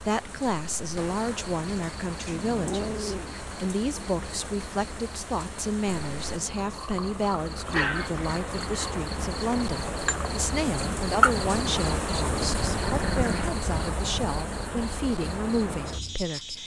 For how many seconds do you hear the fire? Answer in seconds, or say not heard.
not heard.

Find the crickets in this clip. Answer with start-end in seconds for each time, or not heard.
0.0-16.6.